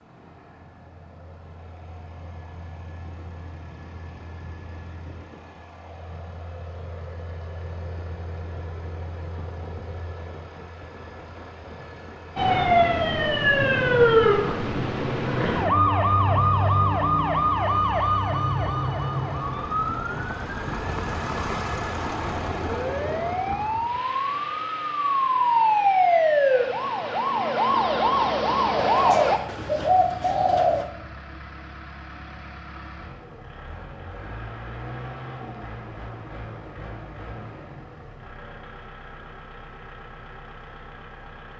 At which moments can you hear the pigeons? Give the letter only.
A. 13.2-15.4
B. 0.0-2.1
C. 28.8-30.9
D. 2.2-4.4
C.